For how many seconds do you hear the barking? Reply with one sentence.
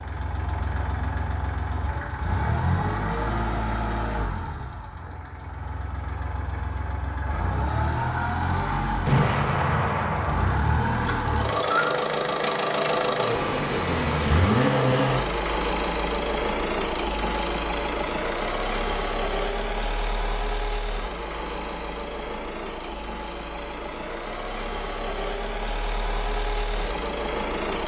You can't hear the barking here.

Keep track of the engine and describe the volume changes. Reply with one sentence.
The loudness of the engine goes up, then down.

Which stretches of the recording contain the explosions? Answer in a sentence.
The explosions can be heard from 9.1 to 10.6 s.